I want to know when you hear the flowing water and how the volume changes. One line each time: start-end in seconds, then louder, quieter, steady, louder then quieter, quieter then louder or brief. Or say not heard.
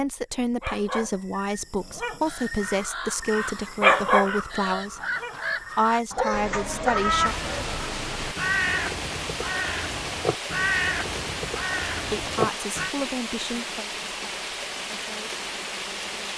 7.2-16.3 steady.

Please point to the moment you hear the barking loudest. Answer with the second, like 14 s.
4 s.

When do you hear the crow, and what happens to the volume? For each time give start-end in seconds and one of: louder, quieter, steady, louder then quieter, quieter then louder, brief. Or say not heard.
2.2-12.9 louder.